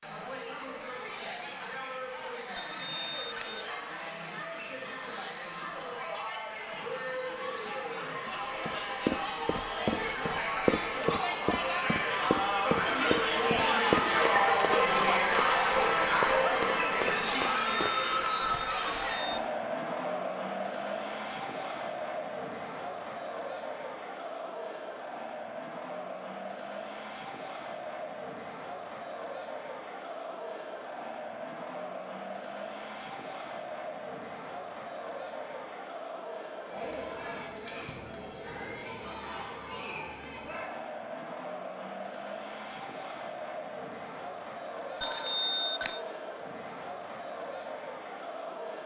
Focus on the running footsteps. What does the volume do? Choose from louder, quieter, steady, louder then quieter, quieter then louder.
quieter.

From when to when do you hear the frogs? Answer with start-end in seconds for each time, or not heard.
not heard.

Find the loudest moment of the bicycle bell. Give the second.
45 s.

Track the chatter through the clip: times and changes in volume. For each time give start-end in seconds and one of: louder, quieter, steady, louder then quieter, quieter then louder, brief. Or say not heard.
0.0-48.8 louder then quieter.